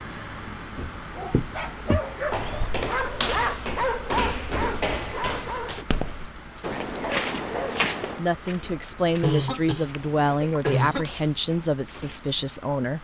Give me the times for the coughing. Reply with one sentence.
The coughing can be heard from 9.2 to 11.1 s.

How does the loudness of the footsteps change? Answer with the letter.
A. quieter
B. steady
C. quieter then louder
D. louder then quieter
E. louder
A.